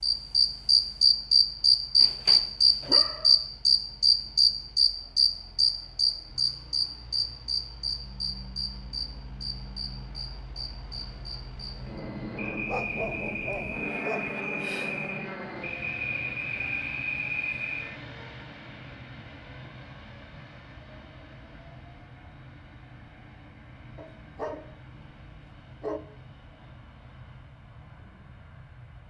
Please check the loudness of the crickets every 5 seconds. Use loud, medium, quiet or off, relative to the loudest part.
loud, medium, quiet, quiet, off, off.